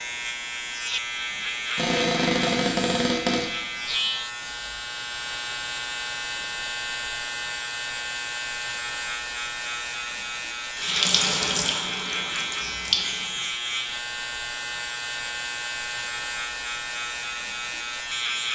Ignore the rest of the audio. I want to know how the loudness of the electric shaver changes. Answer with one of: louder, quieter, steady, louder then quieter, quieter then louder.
steady.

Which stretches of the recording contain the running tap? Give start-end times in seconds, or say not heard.
10.8-13.5.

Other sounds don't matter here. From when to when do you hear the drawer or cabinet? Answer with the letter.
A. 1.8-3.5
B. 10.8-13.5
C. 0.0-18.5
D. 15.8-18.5
A.